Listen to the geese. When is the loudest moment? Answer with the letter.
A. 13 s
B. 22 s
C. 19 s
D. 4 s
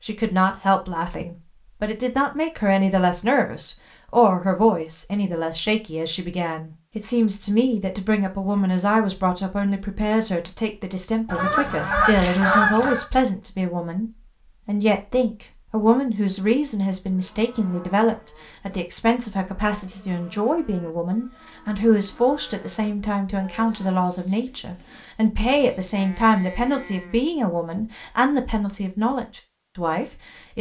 A.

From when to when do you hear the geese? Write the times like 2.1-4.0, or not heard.
11.2-13.1.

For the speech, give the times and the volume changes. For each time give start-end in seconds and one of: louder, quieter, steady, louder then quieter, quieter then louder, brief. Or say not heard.
0.0-30.5 steady.